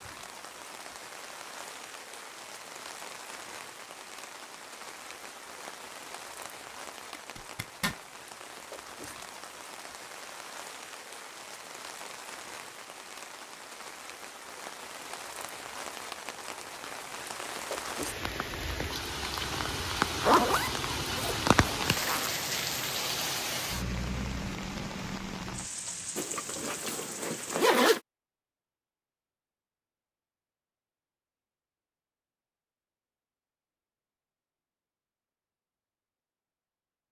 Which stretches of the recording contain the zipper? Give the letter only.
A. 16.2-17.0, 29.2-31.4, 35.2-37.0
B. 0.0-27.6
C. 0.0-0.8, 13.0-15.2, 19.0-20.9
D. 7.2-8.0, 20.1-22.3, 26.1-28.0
D.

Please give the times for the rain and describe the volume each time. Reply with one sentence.
The rain can be heard from 0.0 to 27.6 s, getting louder.